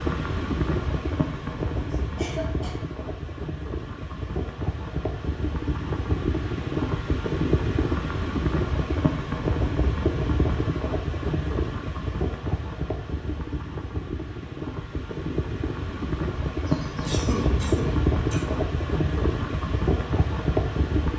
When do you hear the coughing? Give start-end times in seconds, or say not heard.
2.0-3.0, 16.6-18.6.